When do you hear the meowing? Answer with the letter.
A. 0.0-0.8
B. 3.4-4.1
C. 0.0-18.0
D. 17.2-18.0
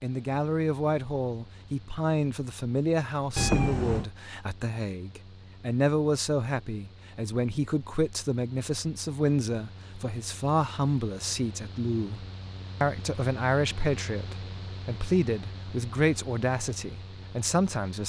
B.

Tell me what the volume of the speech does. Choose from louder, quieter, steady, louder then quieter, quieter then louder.
steady.